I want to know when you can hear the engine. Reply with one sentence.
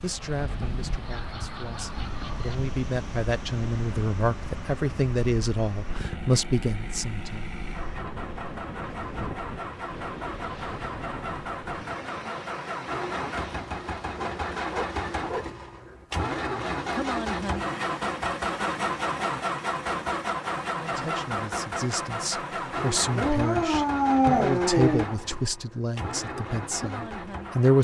The engine can be heard from 0.0 to 27.7 s.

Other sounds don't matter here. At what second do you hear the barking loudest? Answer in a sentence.
The loudest moment of the barking is at 24 seconds.